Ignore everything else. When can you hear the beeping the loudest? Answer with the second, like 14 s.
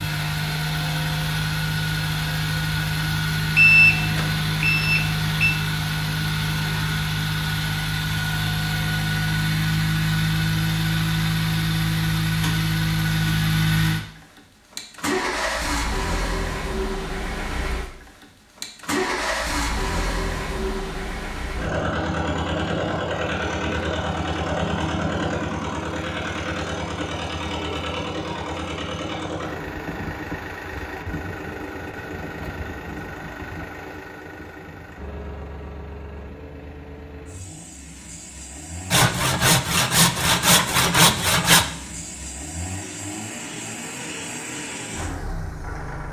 4 s.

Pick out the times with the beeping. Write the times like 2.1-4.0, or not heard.
3.5-5.5.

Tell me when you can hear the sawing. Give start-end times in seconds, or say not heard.
38.9-41.6.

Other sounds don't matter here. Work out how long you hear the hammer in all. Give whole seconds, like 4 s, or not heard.
not heard.